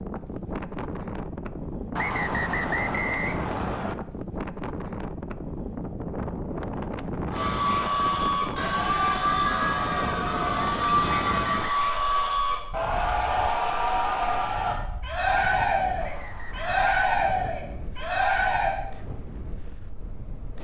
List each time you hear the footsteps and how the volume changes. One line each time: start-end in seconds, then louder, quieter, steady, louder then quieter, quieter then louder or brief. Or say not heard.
not heard.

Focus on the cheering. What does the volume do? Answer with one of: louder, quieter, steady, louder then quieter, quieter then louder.
steady.